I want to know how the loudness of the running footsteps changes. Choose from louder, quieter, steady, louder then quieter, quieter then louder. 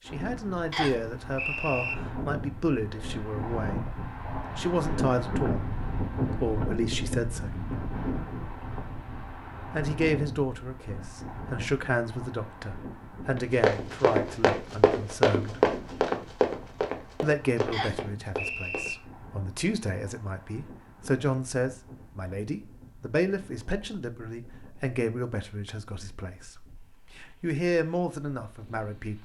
quieter.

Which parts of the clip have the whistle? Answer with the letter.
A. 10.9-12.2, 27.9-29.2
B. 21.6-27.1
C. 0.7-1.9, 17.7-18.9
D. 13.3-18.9
C.